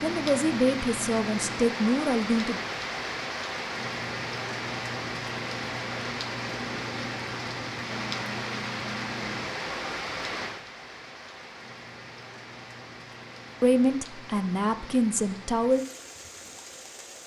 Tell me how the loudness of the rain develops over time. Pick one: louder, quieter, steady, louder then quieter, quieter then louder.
quieter.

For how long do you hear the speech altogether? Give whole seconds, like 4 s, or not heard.
5 s.